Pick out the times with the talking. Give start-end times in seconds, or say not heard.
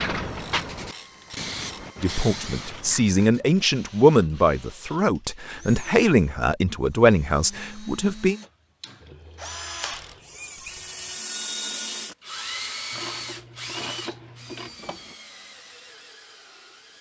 2.0-8.3.